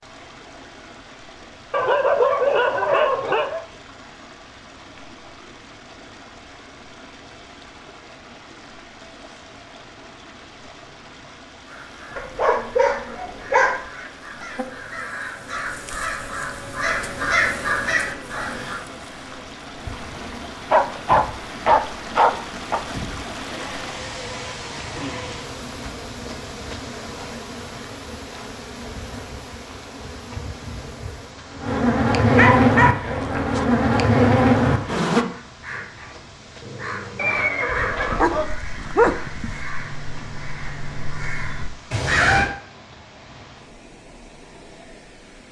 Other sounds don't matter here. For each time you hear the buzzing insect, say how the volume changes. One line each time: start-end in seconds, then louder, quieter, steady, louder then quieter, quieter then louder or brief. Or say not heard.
14.3-35.2 louder.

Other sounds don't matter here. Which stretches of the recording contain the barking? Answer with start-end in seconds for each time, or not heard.
1.7-3.6, 12.2-13.9, 20.1-22.8, 32.4-33.6, 37.7-39.6.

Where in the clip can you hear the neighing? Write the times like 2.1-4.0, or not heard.
37.1-38.5.